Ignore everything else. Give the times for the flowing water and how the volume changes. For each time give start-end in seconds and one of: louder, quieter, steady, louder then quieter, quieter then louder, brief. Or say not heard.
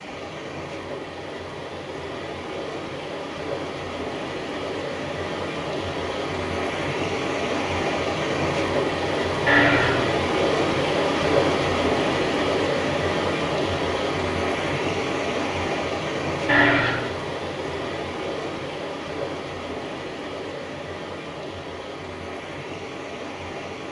0.0-23.8 louder then quieter.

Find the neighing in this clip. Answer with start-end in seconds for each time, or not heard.
9.4-10.1, 16.4-17.1.